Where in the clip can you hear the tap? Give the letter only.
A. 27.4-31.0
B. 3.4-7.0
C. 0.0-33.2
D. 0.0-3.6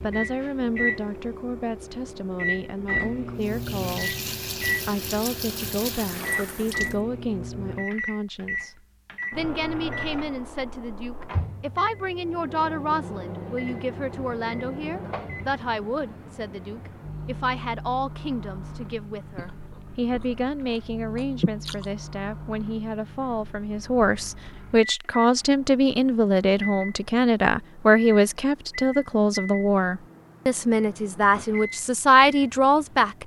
B.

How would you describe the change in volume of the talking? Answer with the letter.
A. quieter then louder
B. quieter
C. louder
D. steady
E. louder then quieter
C.